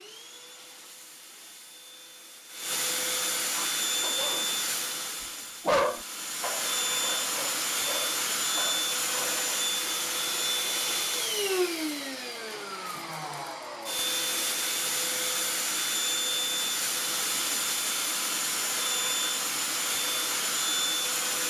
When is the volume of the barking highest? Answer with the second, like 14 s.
6 s.